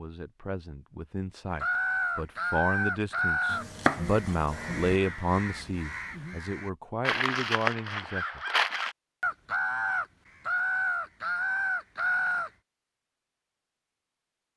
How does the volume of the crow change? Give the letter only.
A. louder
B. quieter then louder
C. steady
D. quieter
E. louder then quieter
B.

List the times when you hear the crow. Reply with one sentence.
The crow can be heard from 1.6 to 12.5 s.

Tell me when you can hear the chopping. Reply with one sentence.
You can hear the chopping from 3.5 to 5.0 s.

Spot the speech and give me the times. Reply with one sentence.
You can hear the speech from 0.0 to 8.6 s.